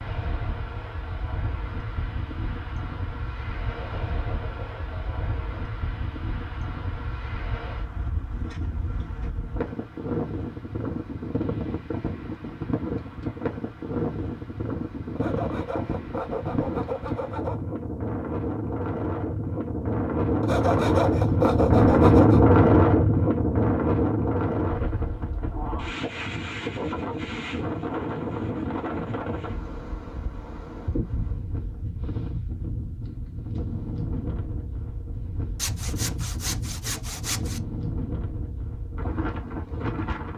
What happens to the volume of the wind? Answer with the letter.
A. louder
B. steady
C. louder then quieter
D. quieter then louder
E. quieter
C.